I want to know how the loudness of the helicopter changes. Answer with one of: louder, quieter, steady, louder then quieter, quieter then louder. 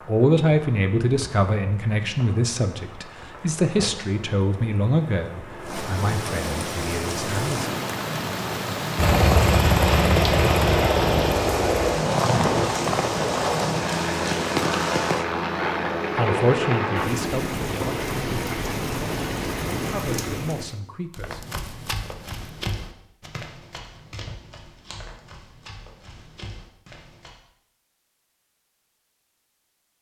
quieter.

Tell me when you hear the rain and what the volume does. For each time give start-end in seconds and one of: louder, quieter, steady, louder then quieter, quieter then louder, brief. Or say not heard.
0.0-20.8 louder.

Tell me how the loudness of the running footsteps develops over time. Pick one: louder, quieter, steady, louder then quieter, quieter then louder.
quieter.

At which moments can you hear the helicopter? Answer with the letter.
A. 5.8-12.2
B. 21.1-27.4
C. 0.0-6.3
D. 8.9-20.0
D.